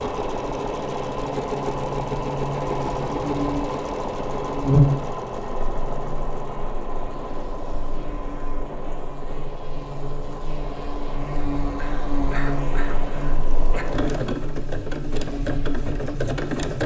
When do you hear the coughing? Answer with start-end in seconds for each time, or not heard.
11.8-13.8.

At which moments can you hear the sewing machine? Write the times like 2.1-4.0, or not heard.
0.0-16.8.